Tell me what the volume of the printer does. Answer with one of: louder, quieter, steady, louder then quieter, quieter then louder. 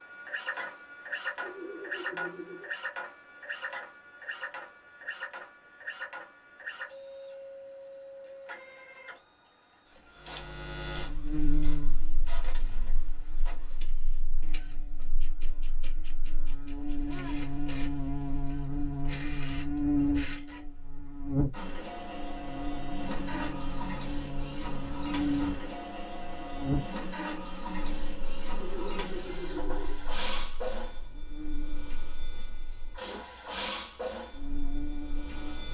quieter then louder.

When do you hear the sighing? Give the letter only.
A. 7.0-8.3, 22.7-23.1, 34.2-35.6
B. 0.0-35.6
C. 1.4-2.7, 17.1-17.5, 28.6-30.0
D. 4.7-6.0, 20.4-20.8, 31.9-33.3
C.